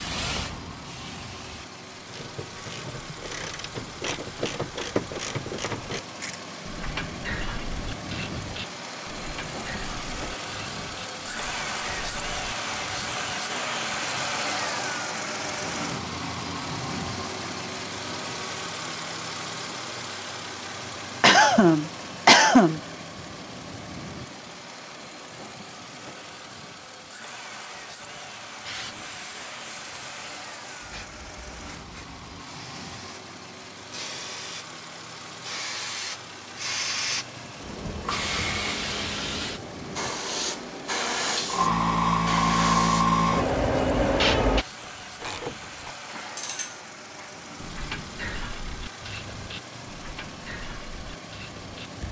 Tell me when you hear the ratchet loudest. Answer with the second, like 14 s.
5 s.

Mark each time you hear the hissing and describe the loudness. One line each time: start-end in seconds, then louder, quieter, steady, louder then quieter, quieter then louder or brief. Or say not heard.
0.0-1.7 brief
28.6-44.6 louder.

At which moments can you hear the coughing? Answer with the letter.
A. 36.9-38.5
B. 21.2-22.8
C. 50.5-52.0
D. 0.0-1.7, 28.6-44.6
B.